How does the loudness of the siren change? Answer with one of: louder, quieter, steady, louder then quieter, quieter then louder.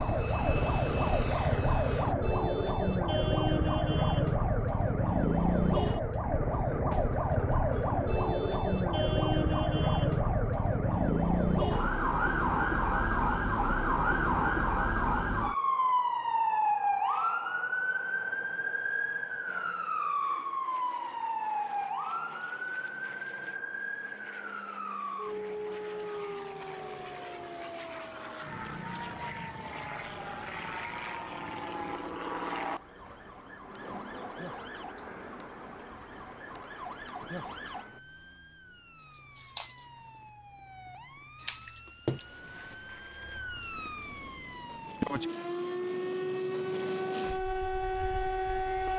quieter then louder.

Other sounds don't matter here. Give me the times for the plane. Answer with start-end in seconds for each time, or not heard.
0.0-2.1, 19.4-38.0, 42.5-48.9.